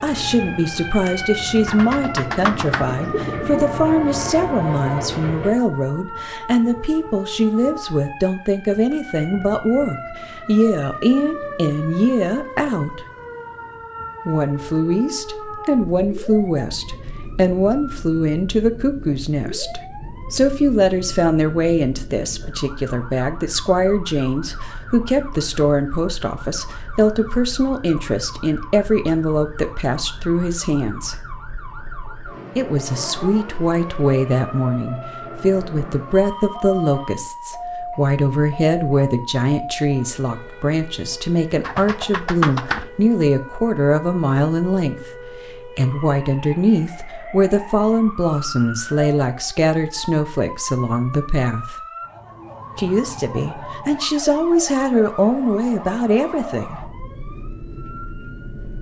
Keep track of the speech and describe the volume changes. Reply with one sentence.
The loudness of the speech stays about the same.